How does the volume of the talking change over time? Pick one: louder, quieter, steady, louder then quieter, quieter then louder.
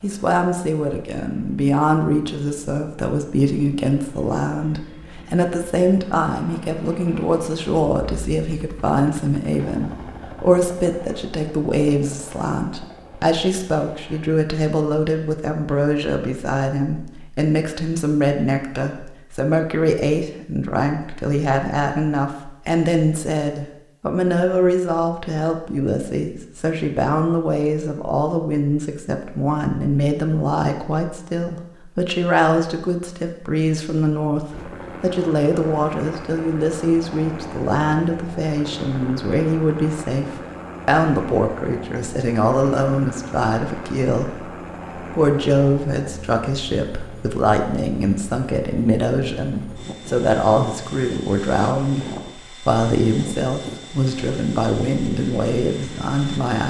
steady.